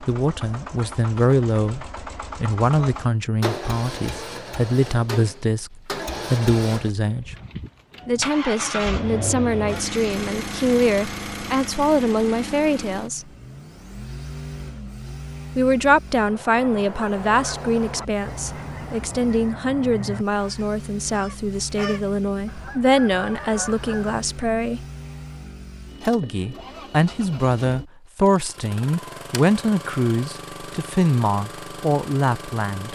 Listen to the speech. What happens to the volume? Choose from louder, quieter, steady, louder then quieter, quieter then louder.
steady.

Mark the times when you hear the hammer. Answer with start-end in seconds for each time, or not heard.
not heard.